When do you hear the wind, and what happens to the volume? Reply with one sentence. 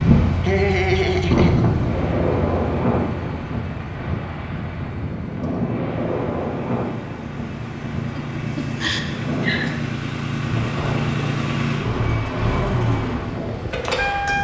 You can hear the wind from 0.0 to 14.3 s, getting quieter.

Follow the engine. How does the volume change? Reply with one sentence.
The volume of the engine goes down, then up.